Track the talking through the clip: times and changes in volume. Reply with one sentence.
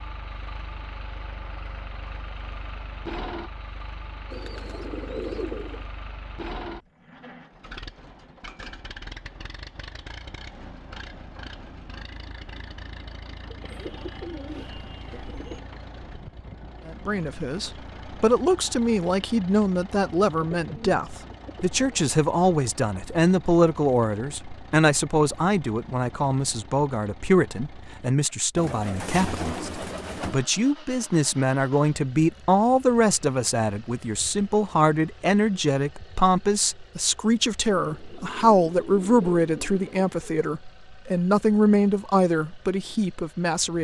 You can hear the talking from 16.9 to 43.7 s, at a steady volume.